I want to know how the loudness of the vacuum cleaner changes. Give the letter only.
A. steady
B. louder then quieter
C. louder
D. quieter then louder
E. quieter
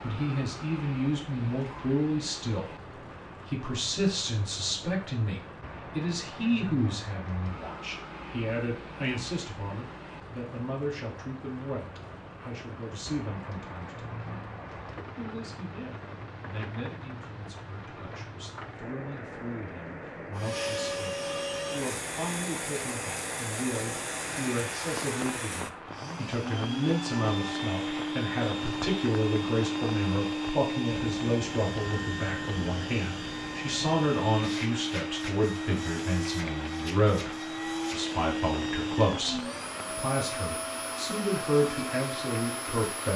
A.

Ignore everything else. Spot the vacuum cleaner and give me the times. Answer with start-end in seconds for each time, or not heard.
20.4-43.1.